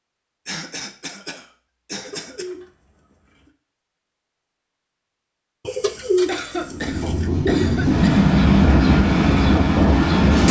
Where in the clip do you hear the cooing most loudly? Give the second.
6 s.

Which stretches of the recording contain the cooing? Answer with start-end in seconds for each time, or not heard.
1.9-3.5, 5.7-7.3.